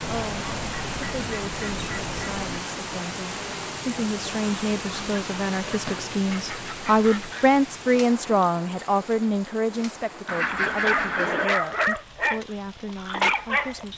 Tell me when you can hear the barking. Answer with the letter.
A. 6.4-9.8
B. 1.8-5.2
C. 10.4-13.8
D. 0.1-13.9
C.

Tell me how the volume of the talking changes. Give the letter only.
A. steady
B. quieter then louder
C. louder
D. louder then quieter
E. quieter
D.